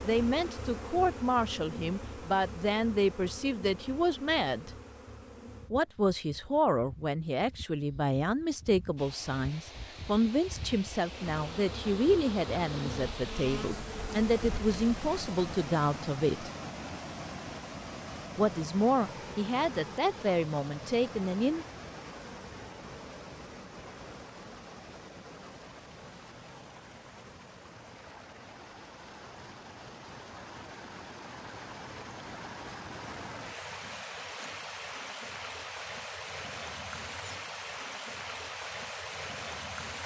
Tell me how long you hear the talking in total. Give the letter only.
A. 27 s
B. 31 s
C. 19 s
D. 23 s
C.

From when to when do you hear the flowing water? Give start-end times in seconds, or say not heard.
8.9-40.0.